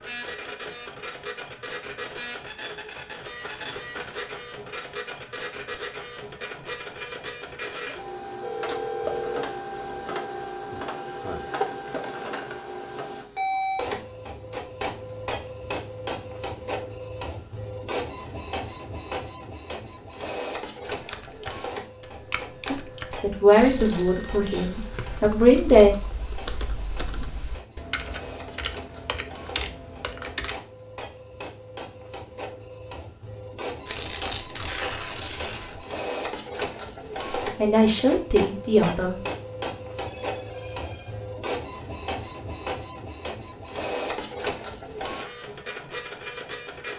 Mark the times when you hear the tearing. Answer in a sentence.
The tearing can be heard from 3.4 to 4.3 s, from 24.7 to 25.2 s and from 33.9 to 35.8 s.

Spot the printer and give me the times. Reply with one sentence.
The printer can be heard from 0.0 to 46.9 s.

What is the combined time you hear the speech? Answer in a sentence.
You can hear the speech for 5 seconds altogether.